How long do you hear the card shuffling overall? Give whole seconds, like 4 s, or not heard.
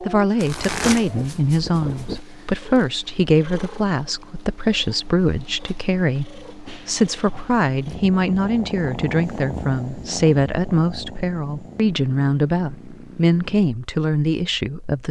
2 s.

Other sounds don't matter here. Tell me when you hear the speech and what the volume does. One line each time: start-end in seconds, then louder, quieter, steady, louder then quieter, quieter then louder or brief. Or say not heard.
0.0-15.0 steady.